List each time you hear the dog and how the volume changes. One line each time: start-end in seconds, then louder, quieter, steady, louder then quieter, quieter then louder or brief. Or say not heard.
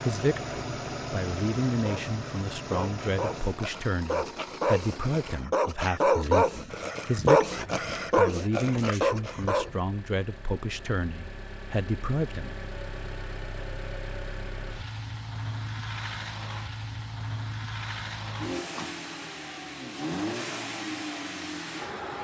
1.7-9.8 louder.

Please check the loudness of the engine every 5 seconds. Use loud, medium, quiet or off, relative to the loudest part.
loud, quiet, medium, loud, loud.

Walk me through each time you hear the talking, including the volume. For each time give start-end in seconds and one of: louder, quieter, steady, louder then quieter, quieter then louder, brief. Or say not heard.
0.0-12.6 steady.